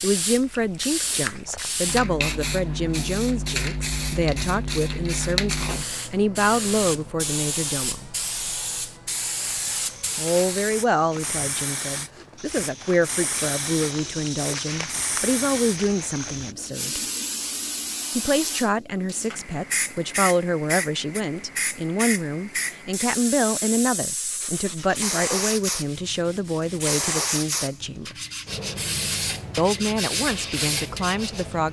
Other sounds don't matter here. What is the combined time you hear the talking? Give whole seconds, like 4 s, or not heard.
27 s.